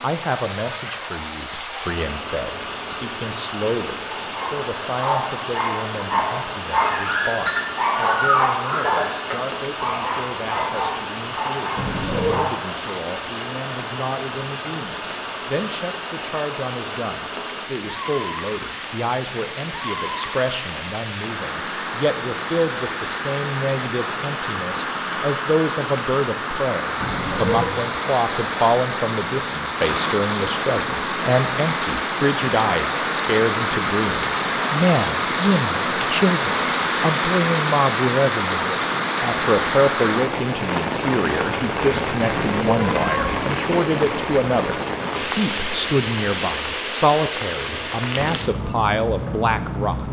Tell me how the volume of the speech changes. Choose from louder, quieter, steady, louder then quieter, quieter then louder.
louder.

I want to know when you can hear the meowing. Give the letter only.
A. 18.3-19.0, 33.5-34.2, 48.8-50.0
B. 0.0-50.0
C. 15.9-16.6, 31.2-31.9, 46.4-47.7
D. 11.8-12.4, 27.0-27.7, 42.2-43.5
D.